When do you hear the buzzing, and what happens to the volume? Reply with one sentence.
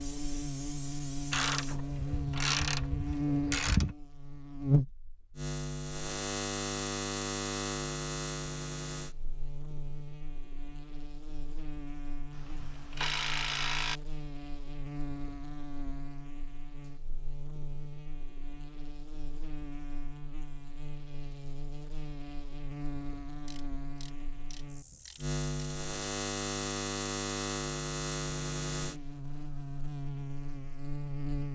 You can hear the buzzing from 0.0 to 31.4 s, getting quieter then louder.